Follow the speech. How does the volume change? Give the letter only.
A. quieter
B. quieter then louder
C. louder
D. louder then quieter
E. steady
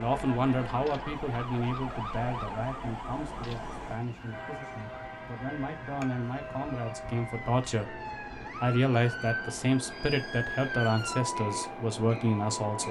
B.